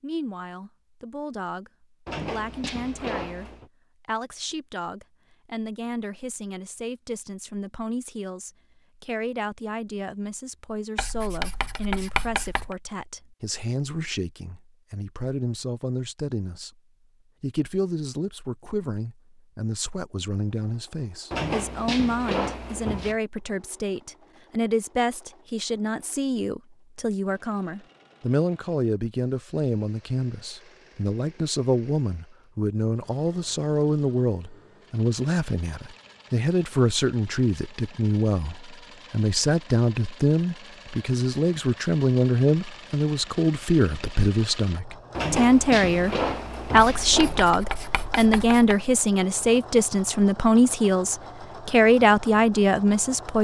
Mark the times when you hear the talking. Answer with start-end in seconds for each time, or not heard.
0.0-16.7, 17.4-53.3.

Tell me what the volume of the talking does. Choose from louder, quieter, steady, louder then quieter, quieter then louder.
louder.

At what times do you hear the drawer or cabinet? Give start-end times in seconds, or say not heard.
2.0-3.7, 21.3-23.1, 45.1-47.5.